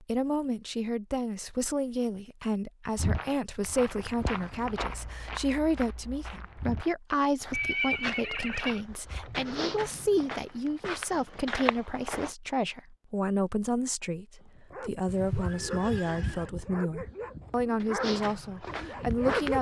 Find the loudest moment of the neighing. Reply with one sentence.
The volume of the neighing peaks at 8 seconds.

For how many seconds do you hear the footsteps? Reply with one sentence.
You can hear the footsteps for 11 seconds altogether.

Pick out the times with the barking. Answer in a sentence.
The barking can be heard from 14.4 to 19.5 s.